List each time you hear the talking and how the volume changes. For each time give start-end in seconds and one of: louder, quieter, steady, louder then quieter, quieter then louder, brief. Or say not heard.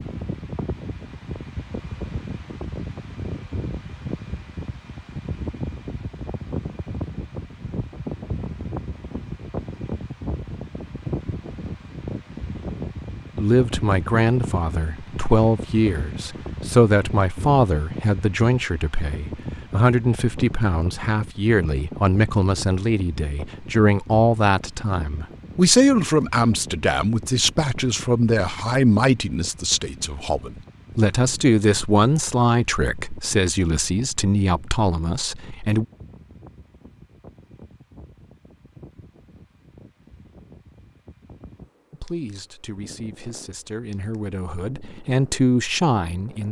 13.3-35.9 steady
41.9-46.4 louder.